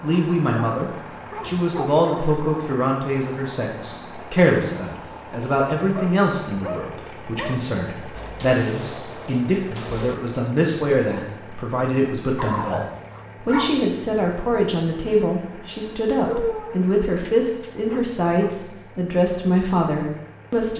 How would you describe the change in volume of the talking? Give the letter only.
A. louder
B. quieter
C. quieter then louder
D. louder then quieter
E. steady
E.